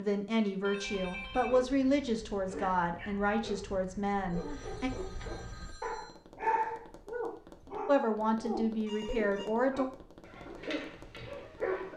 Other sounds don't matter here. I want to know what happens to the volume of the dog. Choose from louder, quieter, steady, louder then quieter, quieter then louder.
louder then quieter.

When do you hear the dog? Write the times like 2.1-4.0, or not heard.
0.8-11.9.